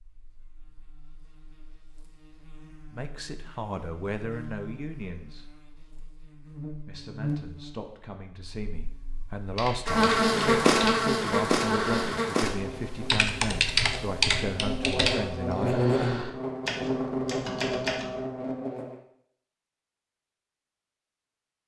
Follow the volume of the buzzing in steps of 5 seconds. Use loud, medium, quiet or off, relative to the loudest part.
quiet, medium, loud, loud, off.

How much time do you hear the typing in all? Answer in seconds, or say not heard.
9 s.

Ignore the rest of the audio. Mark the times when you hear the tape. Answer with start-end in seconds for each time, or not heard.
not heard.